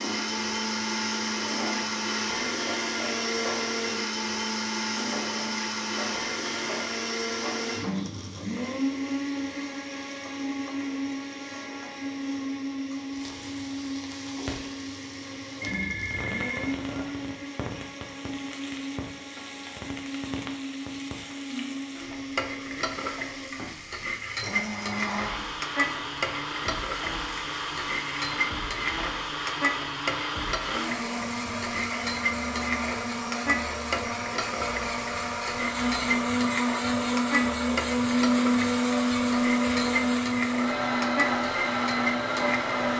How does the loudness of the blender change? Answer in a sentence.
The loudness of the blender goes down, then up.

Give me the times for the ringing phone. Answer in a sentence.
The ringing phone can be heard from 15.6 to 17.1 s.